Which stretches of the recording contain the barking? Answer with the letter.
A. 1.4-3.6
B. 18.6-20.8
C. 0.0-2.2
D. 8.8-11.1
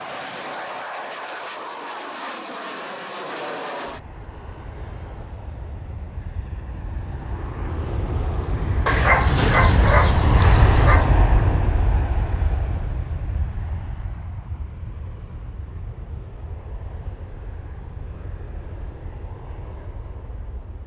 D.